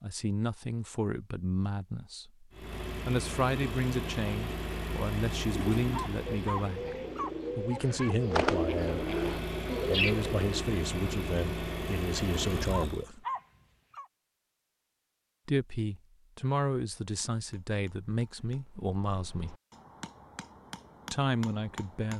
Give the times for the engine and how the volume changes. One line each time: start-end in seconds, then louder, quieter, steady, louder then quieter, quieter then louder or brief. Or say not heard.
2.5-13.1 quieter then louder.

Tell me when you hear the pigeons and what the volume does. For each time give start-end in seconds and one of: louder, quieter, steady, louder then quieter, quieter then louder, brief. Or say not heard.
5.5-10.4 louder.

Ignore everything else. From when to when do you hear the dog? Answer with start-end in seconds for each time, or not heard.
5.9-8.2, 12.7-14.1.